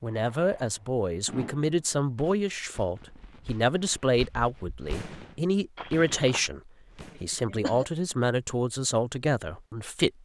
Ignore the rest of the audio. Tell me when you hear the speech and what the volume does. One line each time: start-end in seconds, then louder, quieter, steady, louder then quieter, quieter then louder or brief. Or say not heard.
0.0-10.1 steady.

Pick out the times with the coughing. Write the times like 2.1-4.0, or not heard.
7.2-7.8.